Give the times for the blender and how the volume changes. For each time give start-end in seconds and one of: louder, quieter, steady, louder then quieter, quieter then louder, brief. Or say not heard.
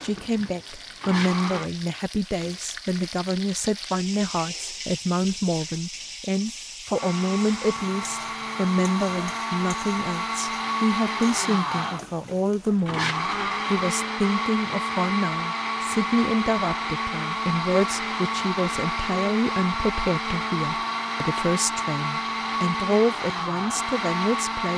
0.0-1.7 brief
6.9-24.7 steady.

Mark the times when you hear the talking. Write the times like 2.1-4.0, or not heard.
0.0-24.7.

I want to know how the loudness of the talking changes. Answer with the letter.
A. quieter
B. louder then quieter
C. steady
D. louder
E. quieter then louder
C.